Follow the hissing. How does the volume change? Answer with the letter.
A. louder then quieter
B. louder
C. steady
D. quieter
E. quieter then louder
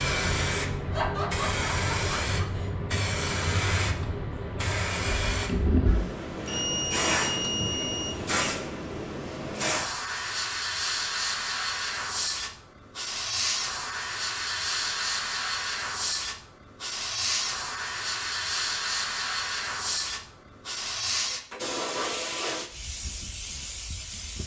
C.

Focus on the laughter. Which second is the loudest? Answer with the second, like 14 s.
1 s.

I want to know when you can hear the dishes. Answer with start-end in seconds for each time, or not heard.
not heard.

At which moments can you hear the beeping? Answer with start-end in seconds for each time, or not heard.
6.3-8.5.